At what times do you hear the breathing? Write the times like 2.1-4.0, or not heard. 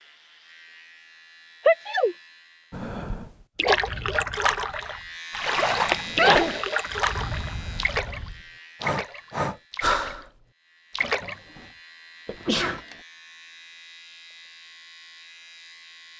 2.7-10.3.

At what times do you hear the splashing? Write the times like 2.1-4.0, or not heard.
3.5-10.2, 10.9-11.3.